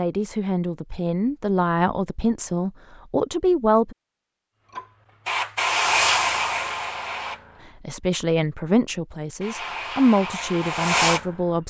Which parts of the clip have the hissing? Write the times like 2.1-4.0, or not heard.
4.7-7.7, 9.4-11.6.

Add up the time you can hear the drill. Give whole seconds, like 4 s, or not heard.
not heard.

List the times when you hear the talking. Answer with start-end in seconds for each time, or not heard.
0.0-4.0, 7.8-11.6.